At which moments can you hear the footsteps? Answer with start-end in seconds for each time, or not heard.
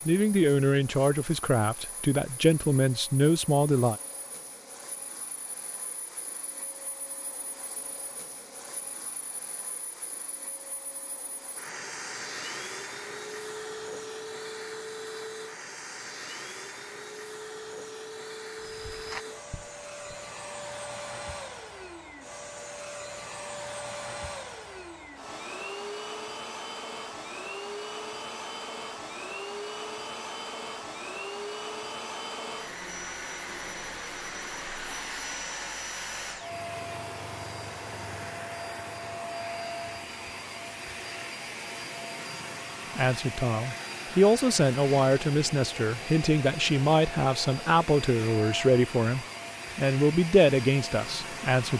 18.6-20.1.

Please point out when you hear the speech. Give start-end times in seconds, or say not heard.
0.1-4.0, 43.0-51.7.